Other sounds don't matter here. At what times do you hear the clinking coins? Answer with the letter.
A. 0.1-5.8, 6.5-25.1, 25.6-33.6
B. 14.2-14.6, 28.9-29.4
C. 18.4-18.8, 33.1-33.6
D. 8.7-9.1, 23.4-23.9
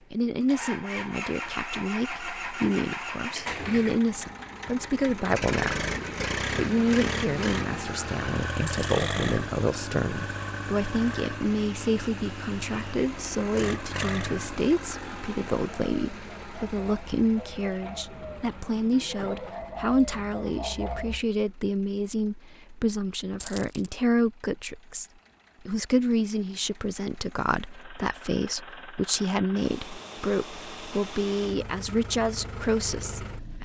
D.